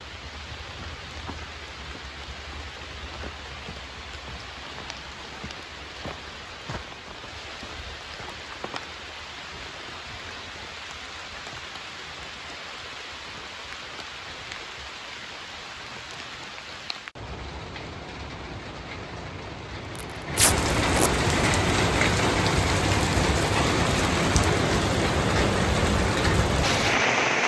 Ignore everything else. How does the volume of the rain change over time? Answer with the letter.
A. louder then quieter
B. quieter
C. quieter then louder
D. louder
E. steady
D.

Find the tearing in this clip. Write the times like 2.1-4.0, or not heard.
19.9-21.1.